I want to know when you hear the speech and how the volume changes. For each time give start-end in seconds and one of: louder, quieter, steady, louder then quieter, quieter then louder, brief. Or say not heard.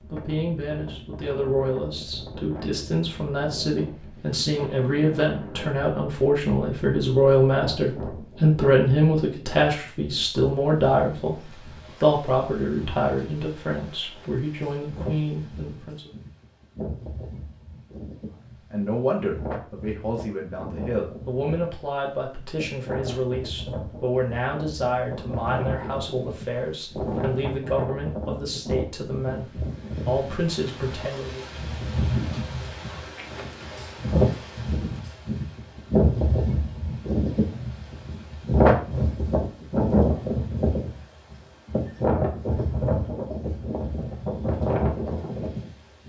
0.0-16.1 louder then quieter
18.7-31.4 steady.